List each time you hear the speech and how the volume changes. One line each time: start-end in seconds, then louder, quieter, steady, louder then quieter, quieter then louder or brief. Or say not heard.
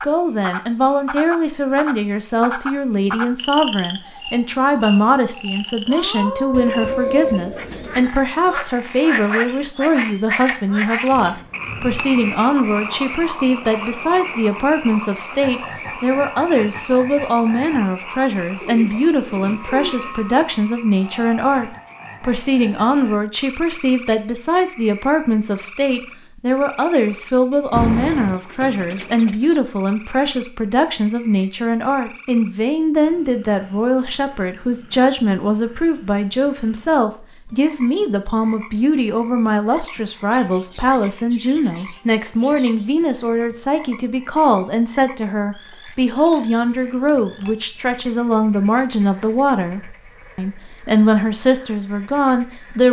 0.0-52.8 steady.